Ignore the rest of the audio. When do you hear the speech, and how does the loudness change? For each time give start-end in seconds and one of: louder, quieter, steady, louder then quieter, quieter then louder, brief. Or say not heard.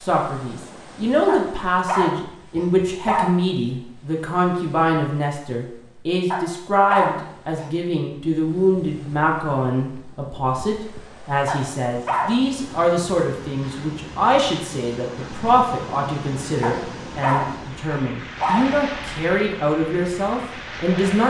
0.0-21.2 steady.